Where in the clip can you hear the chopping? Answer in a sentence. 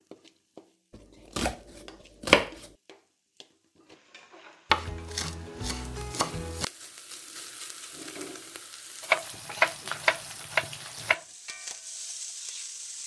You can hear the chopping from 1.4 to 2.6 s, from 4.7 to 6.7 s and from 9.0 to 11.2 s.